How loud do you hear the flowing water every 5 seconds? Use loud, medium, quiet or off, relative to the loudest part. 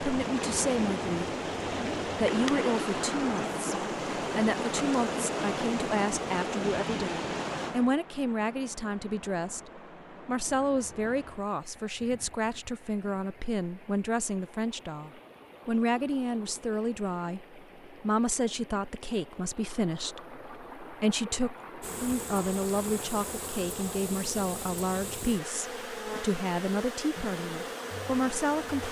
loud, loud, quiet, quiet, quiet, quiet.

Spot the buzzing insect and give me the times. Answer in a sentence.
You can hear the buzzing insect from 21.8 to 28.8 s.